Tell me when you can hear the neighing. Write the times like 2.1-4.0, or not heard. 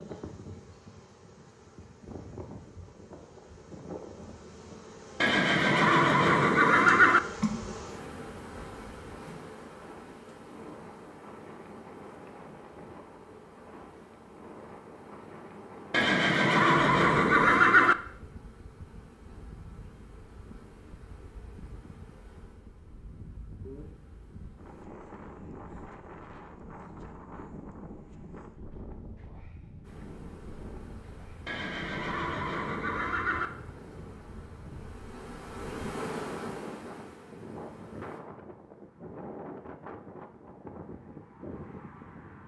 5.2-7.2, 15.9-17.9, 31.4-33.5.